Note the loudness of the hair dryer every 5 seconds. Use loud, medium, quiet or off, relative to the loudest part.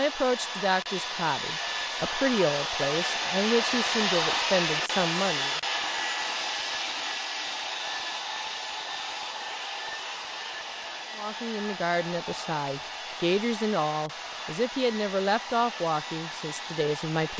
loud, loud, medium, medium.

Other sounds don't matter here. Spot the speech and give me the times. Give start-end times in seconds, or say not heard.
0.0-5.6, 11.2-17.3.